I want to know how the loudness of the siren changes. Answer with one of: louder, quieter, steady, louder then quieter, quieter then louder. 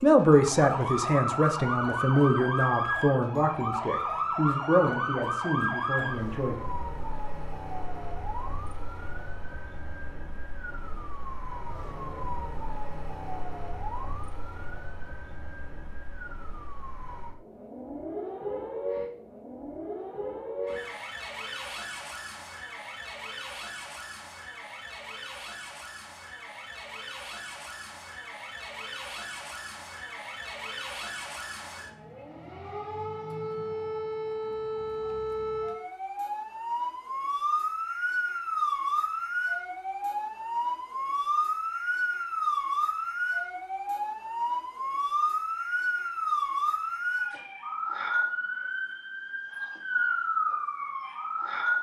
quieter then louder.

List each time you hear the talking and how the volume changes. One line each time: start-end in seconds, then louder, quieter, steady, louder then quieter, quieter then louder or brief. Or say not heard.
0.0-6.5 quieter.